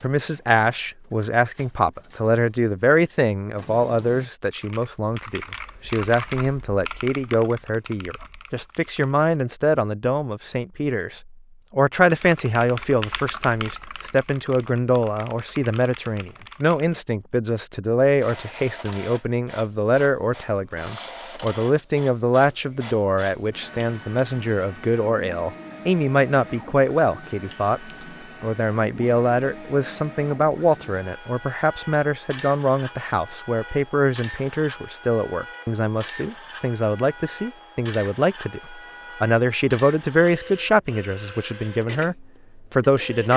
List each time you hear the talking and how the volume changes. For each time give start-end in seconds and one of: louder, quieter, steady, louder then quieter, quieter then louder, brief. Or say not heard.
0.0-43.3 steady.